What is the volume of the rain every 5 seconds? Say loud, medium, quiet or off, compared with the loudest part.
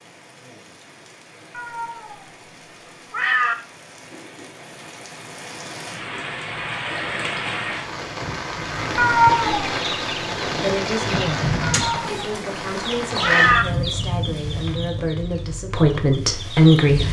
quiet, loud, loud, medium.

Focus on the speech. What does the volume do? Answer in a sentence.
The volume of the speech goes up.